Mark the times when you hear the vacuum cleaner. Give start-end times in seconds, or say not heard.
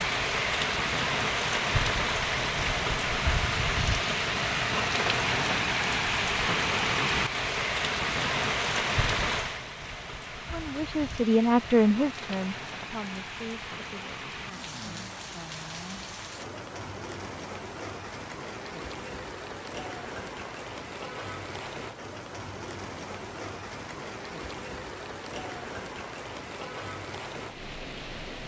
not heard.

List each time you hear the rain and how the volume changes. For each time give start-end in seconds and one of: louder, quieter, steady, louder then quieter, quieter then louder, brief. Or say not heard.
0.0-28.4 quieter.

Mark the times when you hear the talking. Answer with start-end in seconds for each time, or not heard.
10.5-14.3.